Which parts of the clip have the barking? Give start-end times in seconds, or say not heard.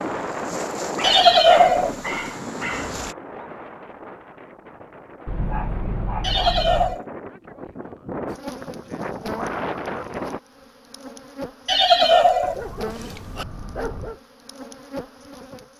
0.9-3.0, 5.2-7.0, 12.4-14.2.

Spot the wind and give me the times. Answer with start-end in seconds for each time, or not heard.
0.0-10.4.